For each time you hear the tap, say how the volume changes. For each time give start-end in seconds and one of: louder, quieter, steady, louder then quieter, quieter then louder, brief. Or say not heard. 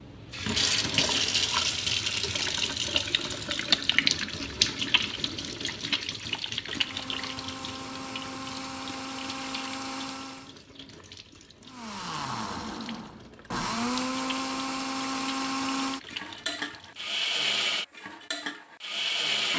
0.0-17.1 quieter then louder.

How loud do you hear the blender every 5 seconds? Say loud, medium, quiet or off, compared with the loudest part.
off, medium, loud, loud.